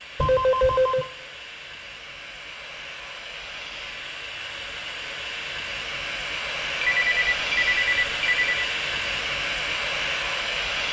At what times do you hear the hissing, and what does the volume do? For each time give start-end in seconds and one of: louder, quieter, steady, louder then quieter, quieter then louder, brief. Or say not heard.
0.0-10.8 louder.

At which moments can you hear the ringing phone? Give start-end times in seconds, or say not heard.
0.1-1.1, 6.8-8.5.